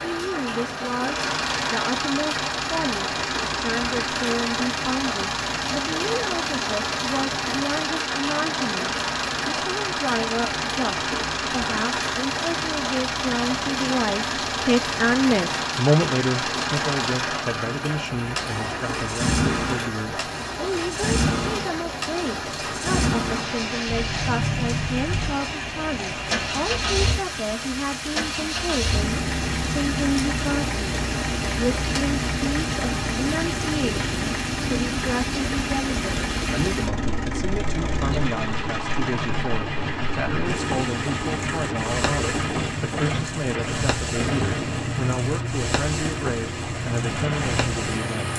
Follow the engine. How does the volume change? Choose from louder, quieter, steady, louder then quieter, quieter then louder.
steady.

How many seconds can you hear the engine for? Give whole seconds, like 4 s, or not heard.
48 s.